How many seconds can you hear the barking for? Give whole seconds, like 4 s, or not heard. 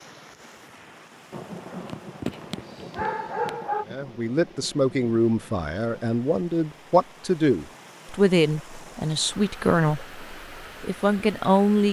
2 s.